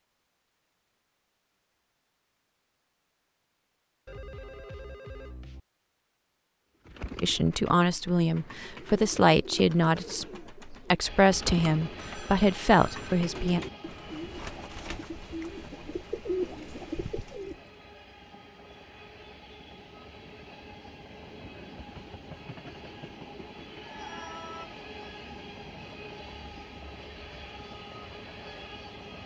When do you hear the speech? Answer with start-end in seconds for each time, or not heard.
7.2-13.6.